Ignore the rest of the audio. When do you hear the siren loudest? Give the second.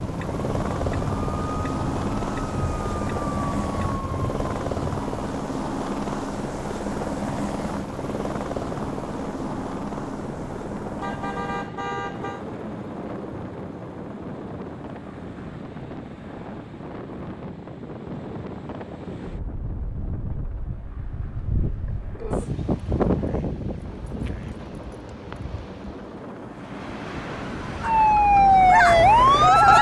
29 s.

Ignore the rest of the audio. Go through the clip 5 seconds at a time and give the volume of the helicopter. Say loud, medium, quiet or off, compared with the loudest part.
loud, loud, medium, quiet, quiet, medium.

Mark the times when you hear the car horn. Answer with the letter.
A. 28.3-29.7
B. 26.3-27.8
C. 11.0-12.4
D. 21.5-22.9
C.